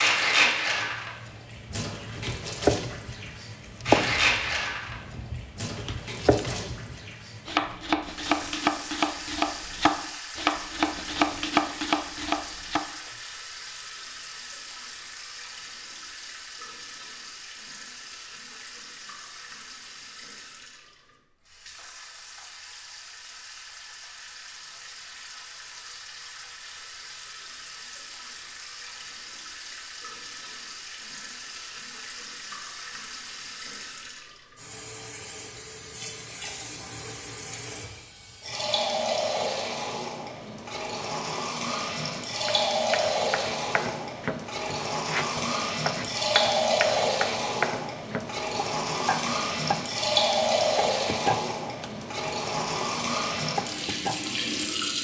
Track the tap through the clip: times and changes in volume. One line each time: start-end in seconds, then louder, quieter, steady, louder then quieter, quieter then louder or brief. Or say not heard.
0.0-55.0 quieter then louder.